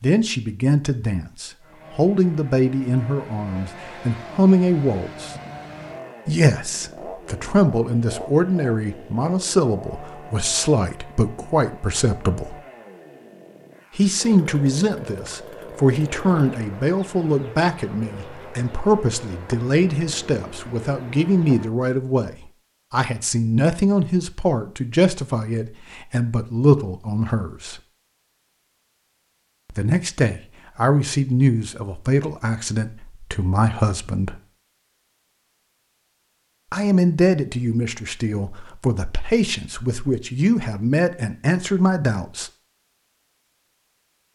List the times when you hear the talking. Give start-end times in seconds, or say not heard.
0.0-5.3, 6.2-12.6, 13.9-27.8, 29.7-34.4, 36.7-42.5.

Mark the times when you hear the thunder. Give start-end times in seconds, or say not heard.
not heard.